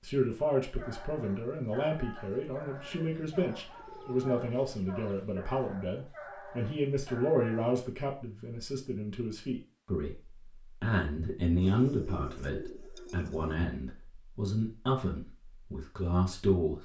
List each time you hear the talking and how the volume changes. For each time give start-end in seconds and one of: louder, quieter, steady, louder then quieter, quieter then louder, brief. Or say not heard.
0.0-16.8 steady.